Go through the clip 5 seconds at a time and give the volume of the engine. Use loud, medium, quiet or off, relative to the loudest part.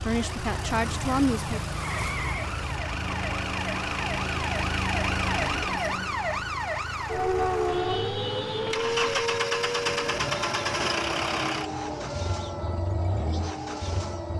medium, loud, loud.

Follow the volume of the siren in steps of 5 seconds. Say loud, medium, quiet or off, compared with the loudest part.
loud, loud, medium.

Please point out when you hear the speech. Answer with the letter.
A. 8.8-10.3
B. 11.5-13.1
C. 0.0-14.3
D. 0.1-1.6
D.